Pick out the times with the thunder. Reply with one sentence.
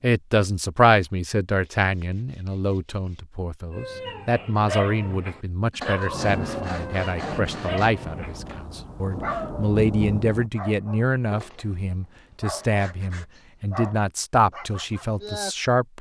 The thunder can be heard from 6.0 to 10.5 s.